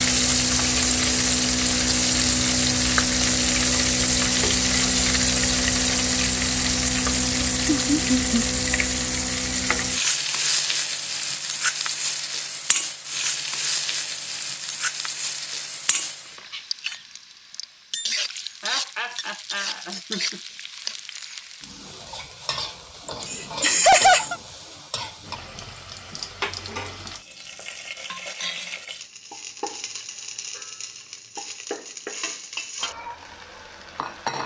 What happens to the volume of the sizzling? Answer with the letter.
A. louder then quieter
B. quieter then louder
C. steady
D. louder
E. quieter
E.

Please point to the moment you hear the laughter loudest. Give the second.
24 s.